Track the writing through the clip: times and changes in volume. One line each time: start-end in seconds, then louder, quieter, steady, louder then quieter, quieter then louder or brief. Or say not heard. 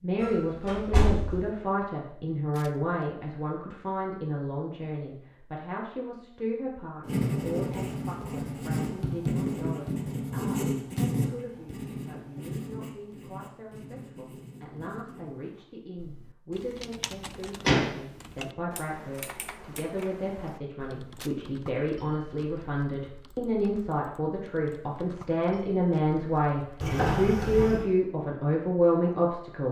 7.0-15.4 quieter.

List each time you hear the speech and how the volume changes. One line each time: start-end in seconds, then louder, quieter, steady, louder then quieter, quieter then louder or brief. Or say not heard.
0.0-29.6 quieter then louder.